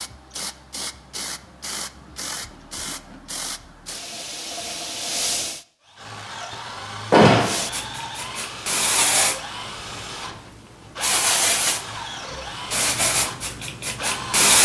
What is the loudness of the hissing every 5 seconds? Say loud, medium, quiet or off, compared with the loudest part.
medium, loud, loud.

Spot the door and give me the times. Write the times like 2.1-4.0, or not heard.
7.1-7.7.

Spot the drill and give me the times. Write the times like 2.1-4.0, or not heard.
5.8-14.5.